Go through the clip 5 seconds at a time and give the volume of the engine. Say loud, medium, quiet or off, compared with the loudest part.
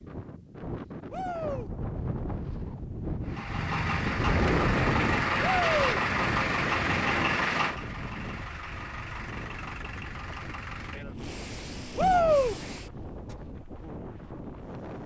loud, loud, quiet.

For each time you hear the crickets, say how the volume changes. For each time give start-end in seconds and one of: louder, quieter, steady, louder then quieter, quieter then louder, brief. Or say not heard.
not heard.